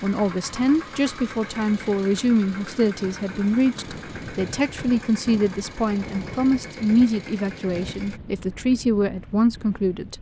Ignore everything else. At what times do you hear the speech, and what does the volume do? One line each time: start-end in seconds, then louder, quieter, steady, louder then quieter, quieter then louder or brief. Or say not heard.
0.0-10.1 steady.